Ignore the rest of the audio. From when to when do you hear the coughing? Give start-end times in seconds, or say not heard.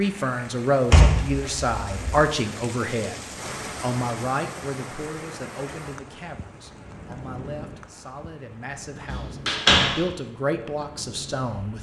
not heard.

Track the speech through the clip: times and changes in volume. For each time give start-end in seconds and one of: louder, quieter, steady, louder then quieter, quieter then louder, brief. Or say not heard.
0.0-11.7 quieter then louder.